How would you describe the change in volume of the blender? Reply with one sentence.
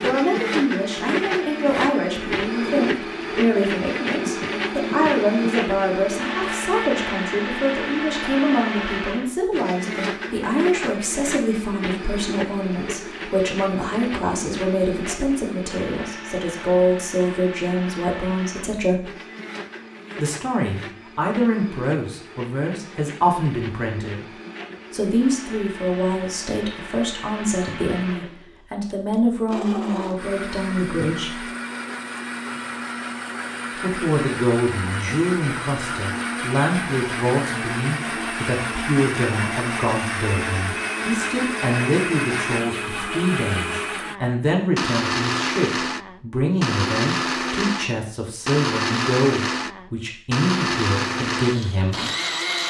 The volume of the blender goes down, then up.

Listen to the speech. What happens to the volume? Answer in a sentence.
The loudness of the speech stays about the same.